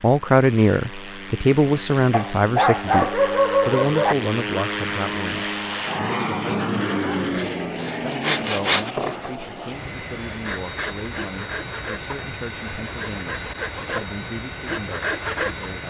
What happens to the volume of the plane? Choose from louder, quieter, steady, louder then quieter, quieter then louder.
louder then quieter.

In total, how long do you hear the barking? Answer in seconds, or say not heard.
2 s.